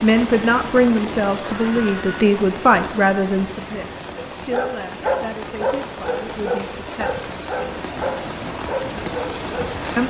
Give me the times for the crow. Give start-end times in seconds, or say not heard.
not heard.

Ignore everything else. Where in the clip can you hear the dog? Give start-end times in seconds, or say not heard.
4.0-10.0.